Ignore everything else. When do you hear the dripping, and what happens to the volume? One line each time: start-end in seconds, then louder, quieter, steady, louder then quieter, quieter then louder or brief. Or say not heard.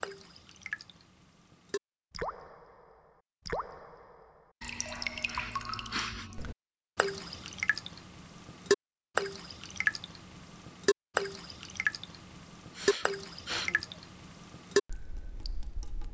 0.0-16.0 louder.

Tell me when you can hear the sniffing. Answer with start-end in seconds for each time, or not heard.
5.2-6.3, 12.7-13.8.